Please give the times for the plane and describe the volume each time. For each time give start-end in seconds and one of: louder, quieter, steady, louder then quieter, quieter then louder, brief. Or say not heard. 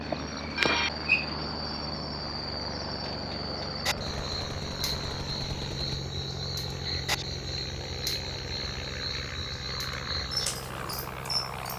0.0-11.7 steady.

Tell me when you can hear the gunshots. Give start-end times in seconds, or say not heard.
4.1-6.0.